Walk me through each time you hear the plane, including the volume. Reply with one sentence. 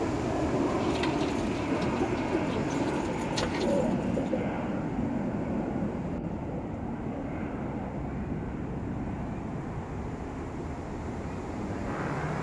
You can hear the plane from 0.0 to 12.3 s, getting quieter.